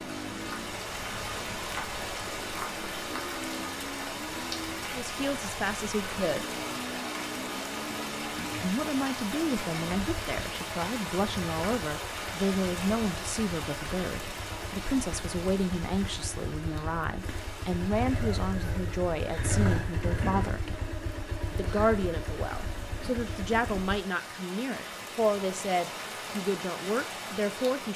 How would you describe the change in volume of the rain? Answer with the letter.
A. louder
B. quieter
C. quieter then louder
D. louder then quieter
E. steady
C.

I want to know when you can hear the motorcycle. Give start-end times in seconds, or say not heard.
0.0-24.0.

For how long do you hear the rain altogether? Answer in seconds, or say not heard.
28 s.